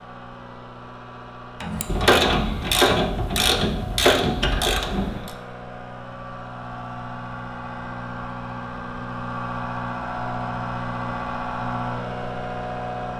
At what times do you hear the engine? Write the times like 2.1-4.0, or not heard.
0.0-13.1.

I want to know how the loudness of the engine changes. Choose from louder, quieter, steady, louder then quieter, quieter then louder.
louder.